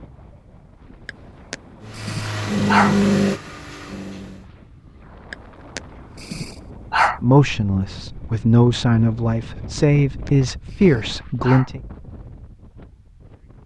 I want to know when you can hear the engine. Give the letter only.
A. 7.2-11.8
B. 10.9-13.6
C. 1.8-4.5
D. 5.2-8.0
C.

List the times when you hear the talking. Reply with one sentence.
You can hear the talking from 7.2 to 11.8 s.